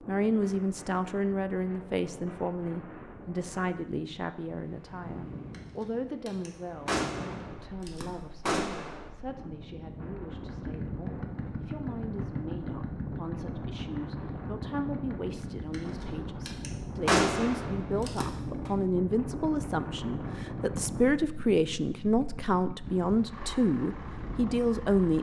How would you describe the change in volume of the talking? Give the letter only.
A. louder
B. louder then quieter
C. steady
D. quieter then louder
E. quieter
D.